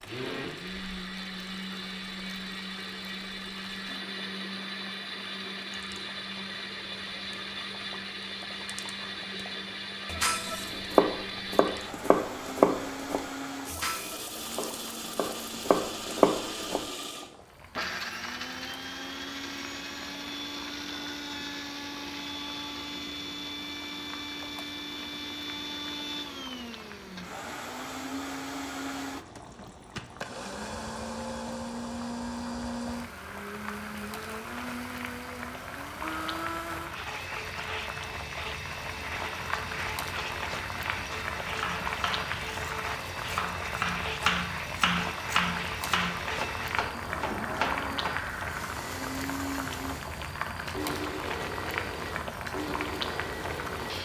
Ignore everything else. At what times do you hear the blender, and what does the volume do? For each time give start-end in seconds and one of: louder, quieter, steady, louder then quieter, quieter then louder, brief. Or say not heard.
0.0-54.0 steady.